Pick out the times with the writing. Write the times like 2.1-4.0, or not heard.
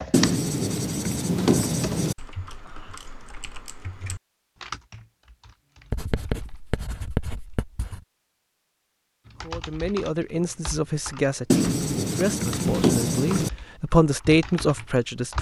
0.1-2.1, 5.9-8.0, 11.5-13.5.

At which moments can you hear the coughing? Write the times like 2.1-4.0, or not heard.
not heard.